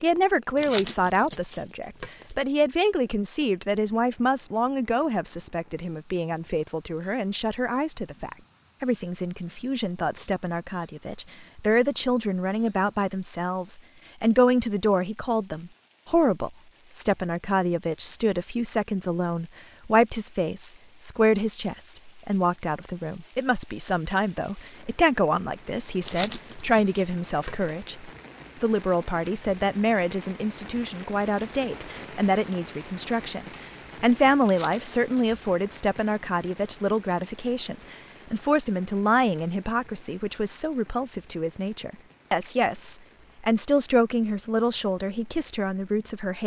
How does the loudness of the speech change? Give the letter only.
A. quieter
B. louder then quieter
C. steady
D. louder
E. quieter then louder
C.